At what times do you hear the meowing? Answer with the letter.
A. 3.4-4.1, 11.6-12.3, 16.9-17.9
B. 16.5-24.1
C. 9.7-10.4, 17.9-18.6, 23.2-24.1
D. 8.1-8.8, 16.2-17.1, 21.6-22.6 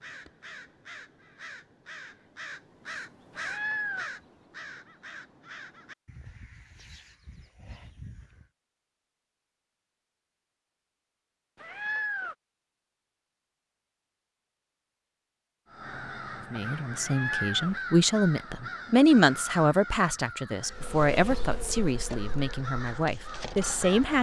A.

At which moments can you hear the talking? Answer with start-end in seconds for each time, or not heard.
16.5-24.1.